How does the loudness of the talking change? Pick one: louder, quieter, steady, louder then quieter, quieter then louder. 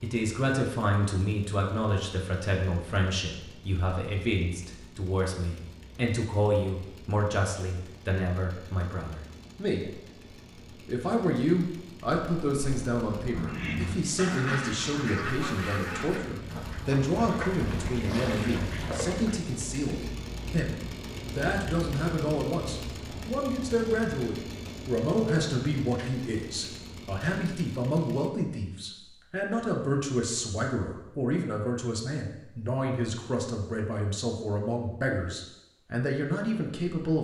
steady.